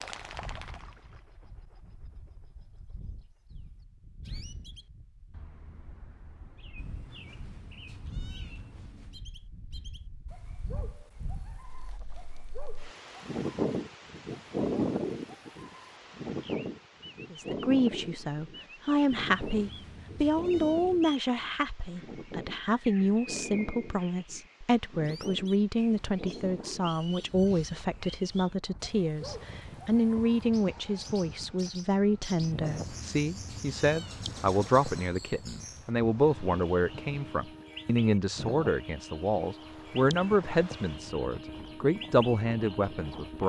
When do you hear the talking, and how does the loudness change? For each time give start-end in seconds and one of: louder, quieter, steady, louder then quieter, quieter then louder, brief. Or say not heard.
17.3-43.4 steady.